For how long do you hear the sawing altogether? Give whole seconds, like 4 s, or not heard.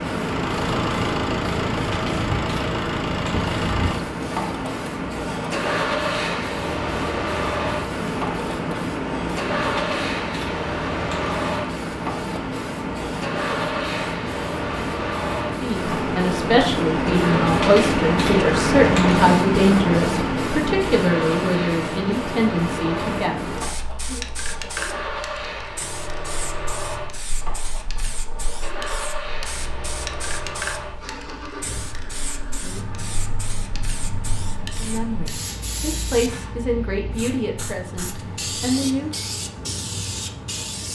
not heard.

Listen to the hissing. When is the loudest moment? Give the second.
19 s.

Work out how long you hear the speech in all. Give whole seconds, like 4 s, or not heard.
13 s.